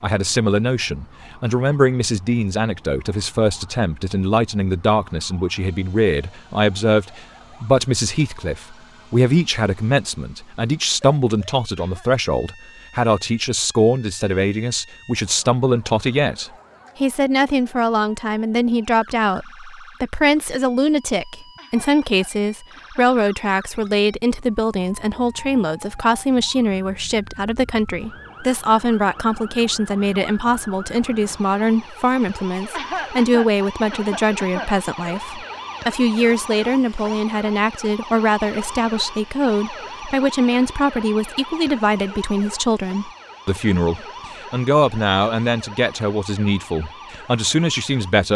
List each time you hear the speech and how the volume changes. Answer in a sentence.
The speech can be heard from 0.0 to 48.3 s, at a steady volume.